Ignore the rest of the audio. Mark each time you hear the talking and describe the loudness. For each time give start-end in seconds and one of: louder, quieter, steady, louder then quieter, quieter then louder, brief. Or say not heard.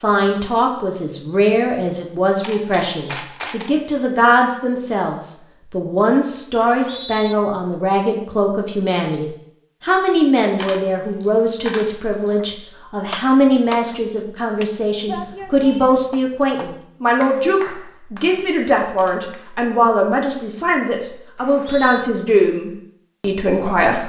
0.0-24.0 steady.